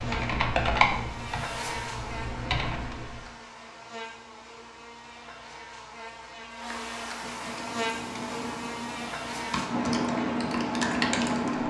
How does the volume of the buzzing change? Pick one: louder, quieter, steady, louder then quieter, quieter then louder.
quieter then louder.